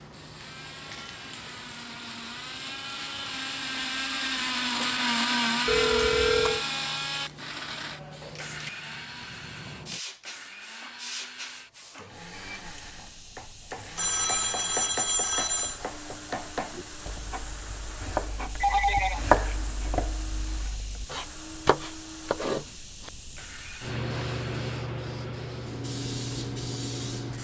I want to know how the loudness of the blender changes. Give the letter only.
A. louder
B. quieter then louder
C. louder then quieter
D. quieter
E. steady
D.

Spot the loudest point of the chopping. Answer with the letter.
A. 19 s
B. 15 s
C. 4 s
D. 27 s
A.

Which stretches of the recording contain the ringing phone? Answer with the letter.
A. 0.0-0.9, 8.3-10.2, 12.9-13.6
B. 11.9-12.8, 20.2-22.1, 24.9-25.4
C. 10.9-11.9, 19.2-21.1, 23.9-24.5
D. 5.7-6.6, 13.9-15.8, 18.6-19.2
D.